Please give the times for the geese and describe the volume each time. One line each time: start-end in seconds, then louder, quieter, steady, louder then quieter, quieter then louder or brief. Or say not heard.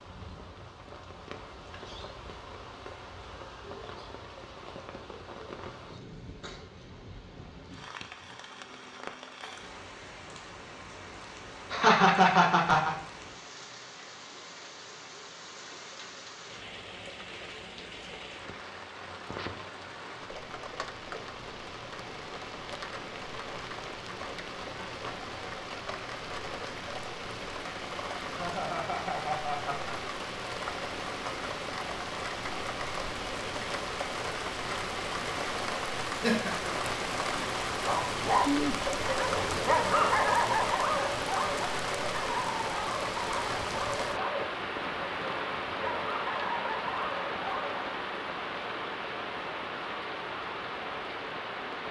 not heard.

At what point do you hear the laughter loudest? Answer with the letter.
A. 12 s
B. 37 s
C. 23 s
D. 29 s
A.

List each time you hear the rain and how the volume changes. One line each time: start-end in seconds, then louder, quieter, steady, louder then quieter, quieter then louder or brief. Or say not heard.
0.0-51.8 louder.